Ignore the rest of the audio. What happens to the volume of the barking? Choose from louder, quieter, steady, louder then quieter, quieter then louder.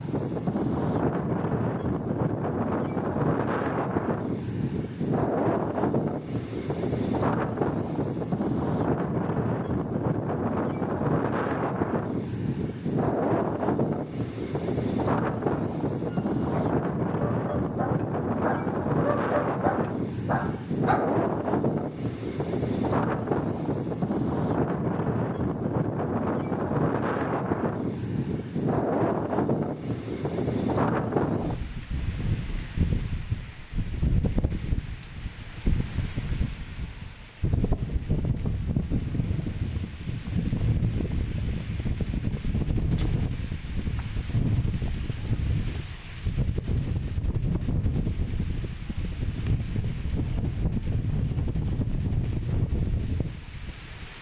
louder.